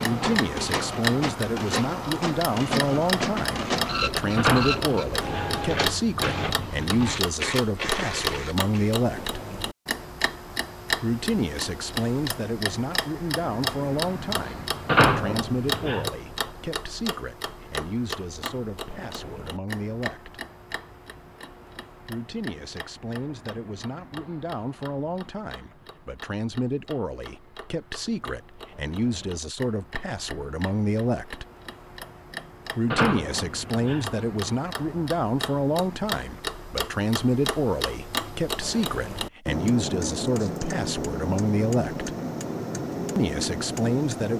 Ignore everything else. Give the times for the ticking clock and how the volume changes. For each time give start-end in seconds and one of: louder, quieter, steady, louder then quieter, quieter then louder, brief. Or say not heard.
0.0-44.3 quieter then louder.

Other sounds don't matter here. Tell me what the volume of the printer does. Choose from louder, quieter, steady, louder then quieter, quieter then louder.
steady.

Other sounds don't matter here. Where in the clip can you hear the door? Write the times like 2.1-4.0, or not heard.
4.3-5.6, 14.8-16.1, 32.9-34.1.